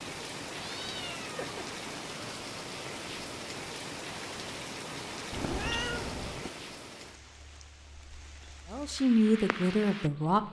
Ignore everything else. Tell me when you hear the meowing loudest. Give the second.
6 s.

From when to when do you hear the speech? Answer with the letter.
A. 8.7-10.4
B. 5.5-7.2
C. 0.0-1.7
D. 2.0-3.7
A.